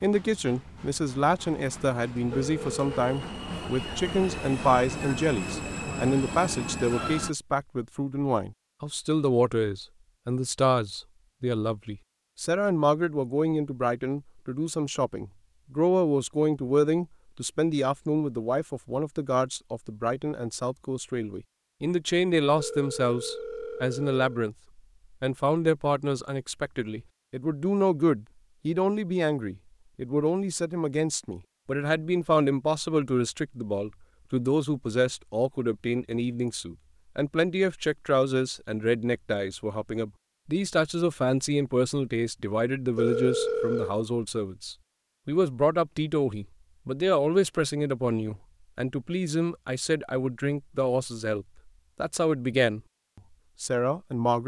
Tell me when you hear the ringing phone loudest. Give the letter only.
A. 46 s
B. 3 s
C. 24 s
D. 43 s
D.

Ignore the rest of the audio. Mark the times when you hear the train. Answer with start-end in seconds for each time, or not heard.
0.0-7.3.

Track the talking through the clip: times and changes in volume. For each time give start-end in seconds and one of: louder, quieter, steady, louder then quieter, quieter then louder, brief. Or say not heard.
0.0-24.6 steady
25.2-52.8 steady
53.6-54.4 brief.